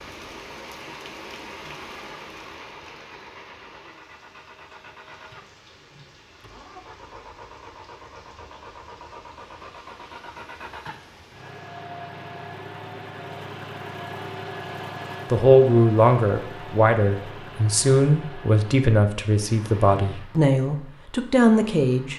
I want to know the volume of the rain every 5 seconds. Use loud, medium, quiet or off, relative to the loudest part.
loud, medium, medium, off, off.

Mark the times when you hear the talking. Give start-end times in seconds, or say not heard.
15.3-22.1.